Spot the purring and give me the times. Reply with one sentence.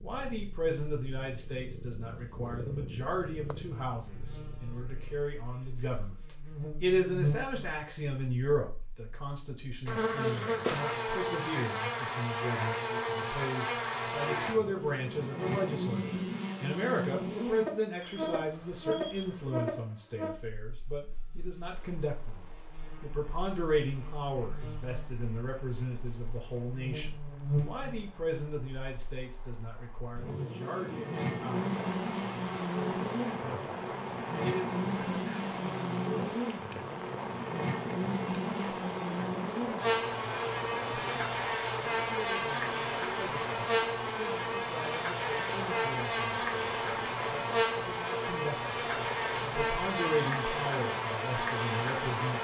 The purring can be heard from 0.0 to 5.3 s.